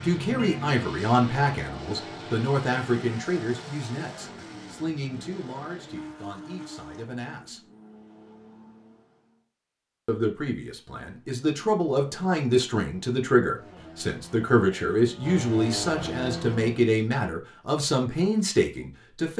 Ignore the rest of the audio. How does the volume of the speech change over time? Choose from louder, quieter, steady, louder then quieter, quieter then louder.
quieter then louder.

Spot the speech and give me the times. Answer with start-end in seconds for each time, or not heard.
0.0-7.6, 10.1-19.3.